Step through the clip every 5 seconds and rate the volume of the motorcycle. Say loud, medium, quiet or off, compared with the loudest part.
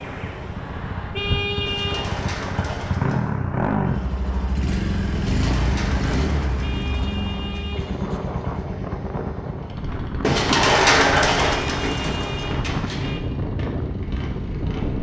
loud, loud, medium.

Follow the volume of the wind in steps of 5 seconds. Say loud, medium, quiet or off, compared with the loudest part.
medium, medium, loud.